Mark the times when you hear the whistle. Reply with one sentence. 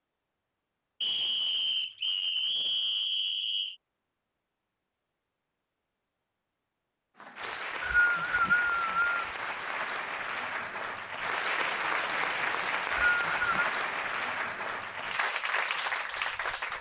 You can hear the whistle from 1.0 to 3.8 s, from 7.4 to 9.2 s and from 12.5 to 13.7 s.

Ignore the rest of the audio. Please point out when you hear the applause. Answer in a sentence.
The applause can be heard from 7.2 to 16.7 s.